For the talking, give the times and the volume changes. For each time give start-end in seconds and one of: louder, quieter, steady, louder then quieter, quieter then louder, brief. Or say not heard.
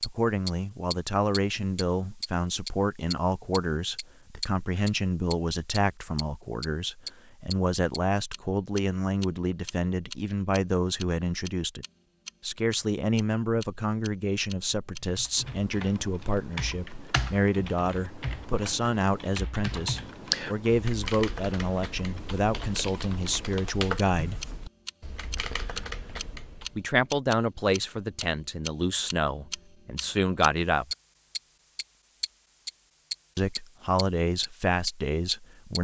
0.0-24.4 steady
26.8-30.9 quieter then louder
33.4-35.7 brief.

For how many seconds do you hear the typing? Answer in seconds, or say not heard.
12 s.